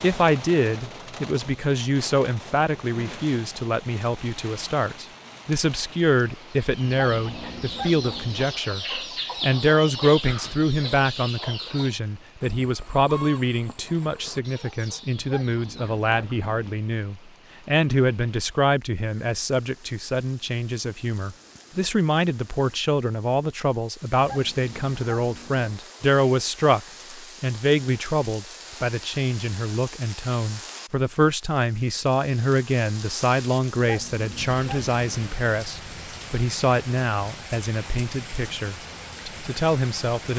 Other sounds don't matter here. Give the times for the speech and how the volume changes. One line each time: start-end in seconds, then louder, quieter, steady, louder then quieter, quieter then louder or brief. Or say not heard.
0.0-40.3 steady.